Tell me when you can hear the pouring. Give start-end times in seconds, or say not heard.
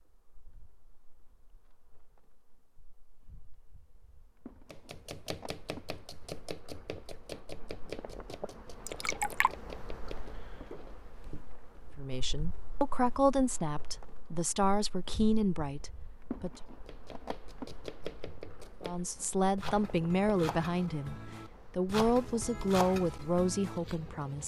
8.8-9.5.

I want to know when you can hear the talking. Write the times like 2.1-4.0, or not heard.
11.9-16.5, 18.9-24.4.